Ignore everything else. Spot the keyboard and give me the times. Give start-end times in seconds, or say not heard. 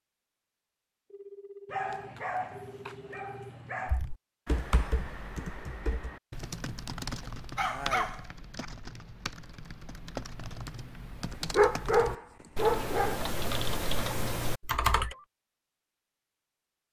3.9-15.2.